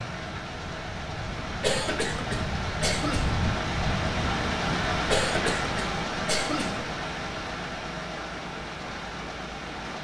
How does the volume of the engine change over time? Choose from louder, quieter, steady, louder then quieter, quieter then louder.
louder then quieter.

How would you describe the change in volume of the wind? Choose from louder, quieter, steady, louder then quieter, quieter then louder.
louder then quieter.